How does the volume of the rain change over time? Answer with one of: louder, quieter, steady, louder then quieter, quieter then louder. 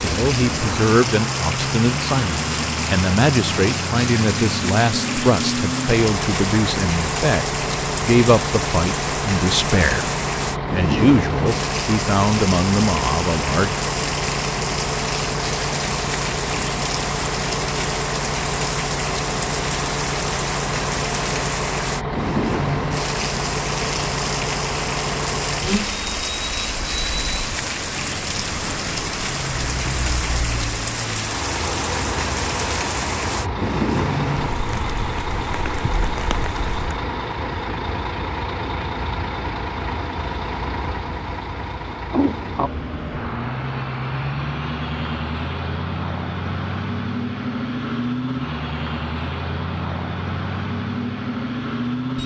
steady.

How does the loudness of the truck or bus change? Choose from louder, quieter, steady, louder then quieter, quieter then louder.
steady.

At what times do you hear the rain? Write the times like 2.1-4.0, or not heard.
0.0-37.0.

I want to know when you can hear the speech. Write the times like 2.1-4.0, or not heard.
0.0-10.1, 10.7-13.8.